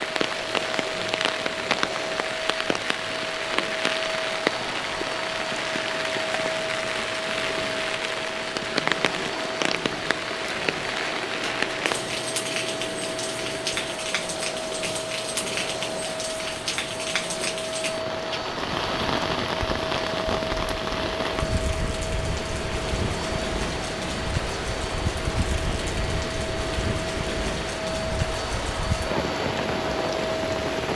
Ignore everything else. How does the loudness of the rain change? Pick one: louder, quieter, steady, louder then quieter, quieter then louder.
steady.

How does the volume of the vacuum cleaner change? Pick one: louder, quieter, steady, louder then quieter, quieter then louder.
steady.